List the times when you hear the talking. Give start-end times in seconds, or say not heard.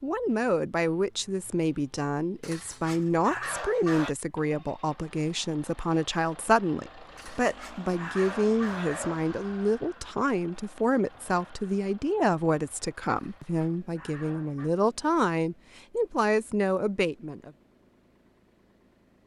0.0-17.5.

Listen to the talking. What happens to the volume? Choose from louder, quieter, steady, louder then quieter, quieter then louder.
steady.